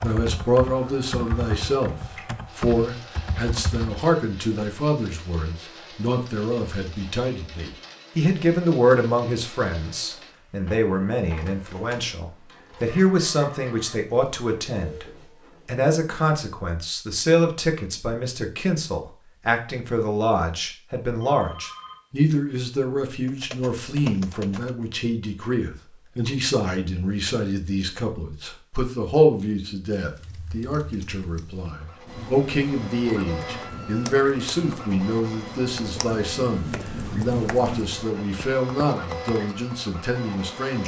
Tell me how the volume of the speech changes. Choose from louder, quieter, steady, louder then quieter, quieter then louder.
steady.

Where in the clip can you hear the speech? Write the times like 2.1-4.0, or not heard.
0.0-15.1, 15.7-40.8.